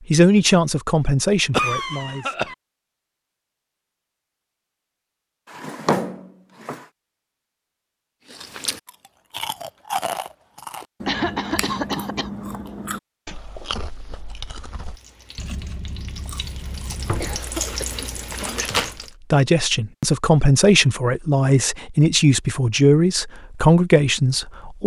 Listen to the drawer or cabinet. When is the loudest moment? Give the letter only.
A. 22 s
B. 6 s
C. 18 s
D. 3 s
B.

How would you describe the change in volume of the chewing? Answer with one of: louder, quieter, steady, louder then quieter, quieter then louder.
quieter.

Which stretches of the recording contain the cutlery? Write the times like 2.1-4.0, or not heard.
not heard.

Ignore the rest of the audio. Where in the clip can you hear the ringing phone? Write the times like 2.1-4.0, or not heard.
not heard.